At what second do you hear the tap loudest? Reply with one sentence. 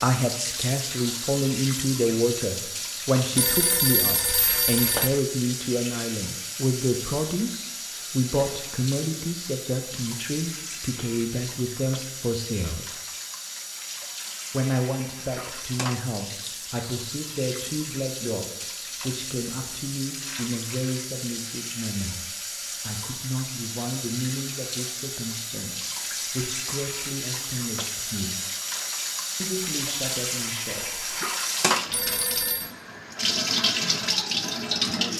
The loudest moment of the tap is at 34 seconds.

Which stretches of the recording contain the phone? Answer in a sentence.
You can hear the phone from 3.4 to 5.1 s and from 31.9 to 32.7 s.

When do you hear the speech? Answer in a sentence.
You can hear the speech from 0.0 to 12.9 s, from 14.5 to 28.4 s and from 29.4 to 31.2 s.